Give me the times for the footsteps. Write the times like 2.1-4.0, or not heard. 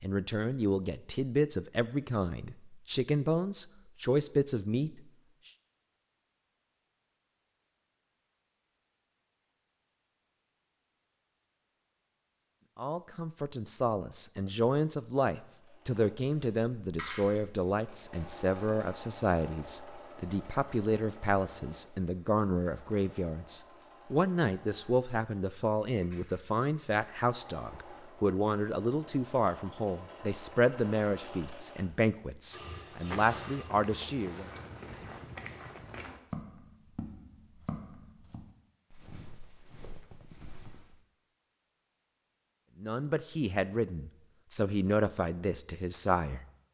32.9-41.0.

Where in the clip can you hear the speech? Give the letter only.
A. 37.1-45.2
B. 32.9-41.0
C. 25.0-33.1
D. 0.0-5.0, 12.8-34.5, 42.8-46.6
D.